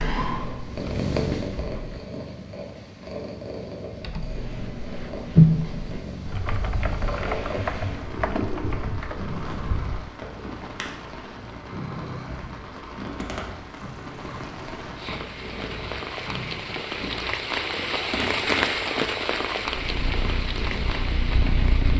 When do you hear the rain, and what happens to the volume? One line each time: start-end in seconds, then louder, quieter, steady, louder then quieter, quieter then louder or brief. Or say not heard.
7.2-21.9 louder.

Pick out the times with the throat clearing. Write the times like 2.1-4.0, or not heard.
not heard.